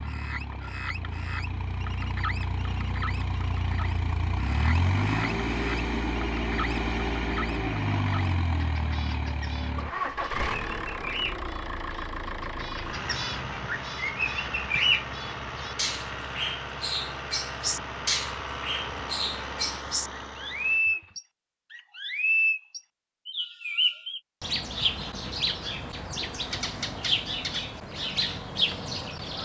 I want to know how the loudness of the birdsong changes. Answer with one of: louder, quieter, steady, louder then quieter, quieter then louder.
louder.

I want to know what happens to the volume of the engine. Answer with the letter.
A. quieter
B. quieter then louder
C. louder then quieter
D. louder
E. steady
C.